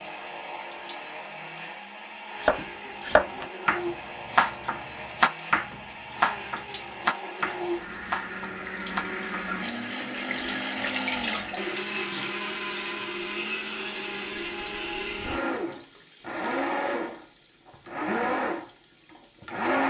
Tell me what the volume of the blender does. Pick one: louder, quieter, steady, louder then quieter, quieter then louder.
louder.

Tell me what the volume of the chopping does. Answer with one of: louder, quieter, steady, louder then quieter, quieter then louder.
quieter.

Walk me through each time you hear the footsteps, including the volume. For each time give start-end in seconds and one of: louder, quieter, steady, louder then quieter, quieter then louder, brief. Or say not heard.
not heard.